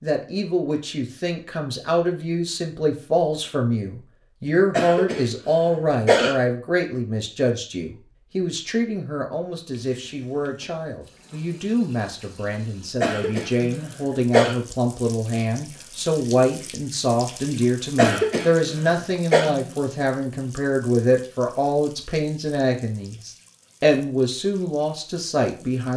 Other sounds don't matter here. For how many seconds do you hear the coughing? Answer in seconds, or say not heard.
5 s.